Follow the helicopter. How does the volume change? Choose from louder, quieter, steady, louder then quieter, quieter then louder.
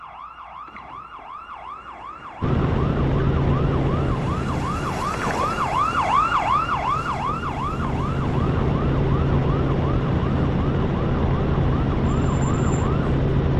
quieter then louder.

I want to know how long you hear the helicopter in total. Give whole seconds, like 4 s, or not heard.
11 s.